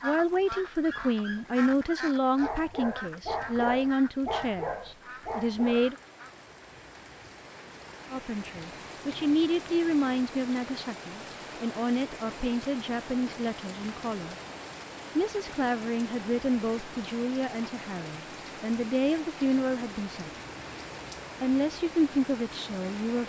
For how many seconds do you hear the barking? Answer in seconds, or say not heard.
5 s.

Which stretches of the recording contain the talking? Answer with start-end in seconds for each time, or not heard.
0.0-6.0, 8.1-14.3, 15.2-20.3, 21.4-23.2.